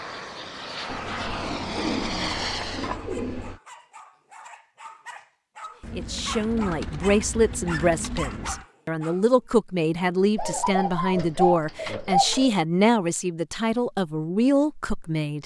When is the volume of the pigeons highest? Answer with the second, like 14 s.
12 s.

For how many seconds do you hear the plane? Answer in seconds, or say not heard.
3 s.